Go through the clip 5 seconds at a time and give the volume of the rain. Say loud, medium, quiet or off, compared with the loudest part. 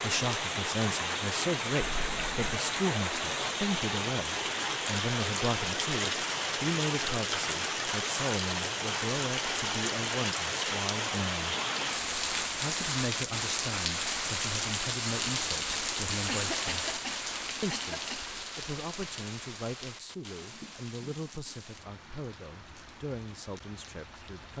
loud, loud, loud, loud, quiet.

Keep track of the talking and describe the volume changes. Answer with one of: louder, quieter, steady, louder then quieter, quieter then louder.
quieter.